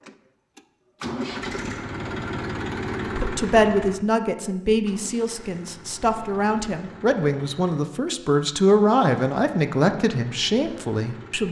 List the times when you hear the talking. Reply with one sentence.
The talking can be heard from 3.0 to 11.4 s.